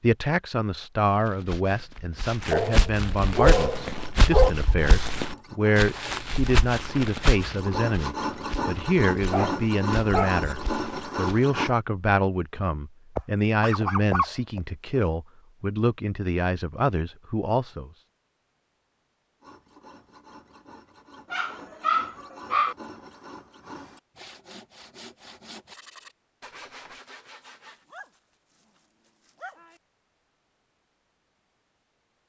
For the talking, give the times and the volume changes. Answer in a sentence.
The talking can be heard from 0.0 to 17.9 s, at a steady volume.